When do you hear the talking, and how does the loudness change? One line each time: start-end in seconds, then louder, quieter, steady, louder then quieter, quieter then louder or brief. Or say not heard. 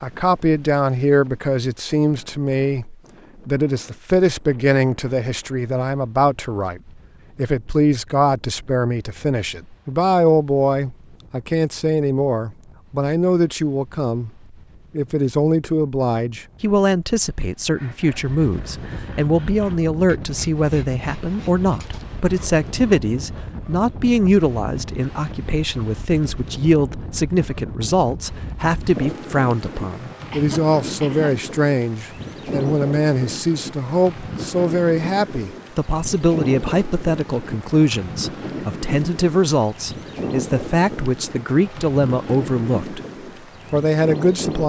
0.0-14.3 steady
14.9-43.0 steady
43.7-44.6 brief.